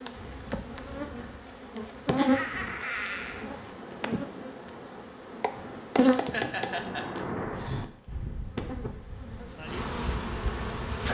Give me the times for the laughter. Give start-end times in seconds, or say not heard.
2.1-3.5, 6.0-7.8.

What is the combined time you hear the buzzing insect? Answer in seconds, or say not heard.
11 s.